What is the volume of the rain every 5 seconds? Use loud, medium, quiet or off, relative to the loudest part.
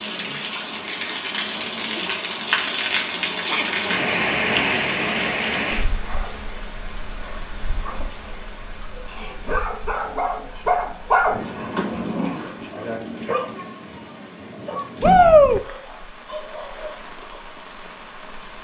loud, medium, quiet, quiet.